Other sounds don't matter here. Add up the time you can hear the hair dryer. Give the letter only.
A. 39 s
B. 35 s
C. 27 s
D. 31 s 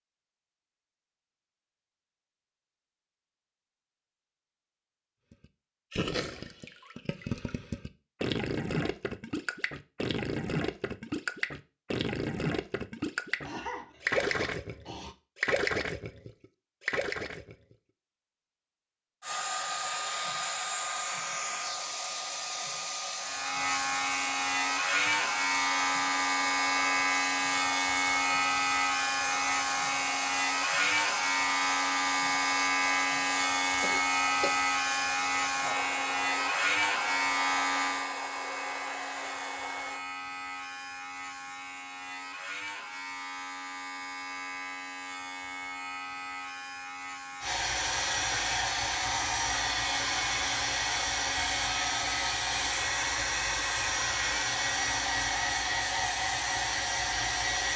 D.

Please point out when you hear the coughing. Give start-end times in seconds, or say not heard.
13.4-15.2, 33.8-34.5.